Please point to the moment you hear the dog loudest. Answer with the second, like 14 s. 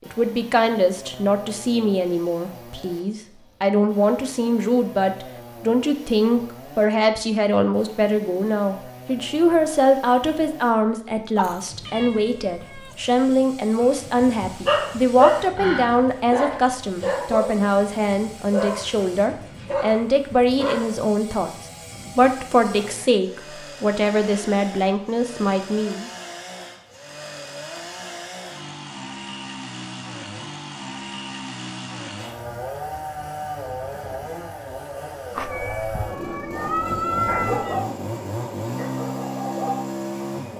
15 s.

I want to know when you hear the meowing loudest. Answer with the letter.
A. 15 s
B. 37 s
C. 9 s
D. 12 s
B.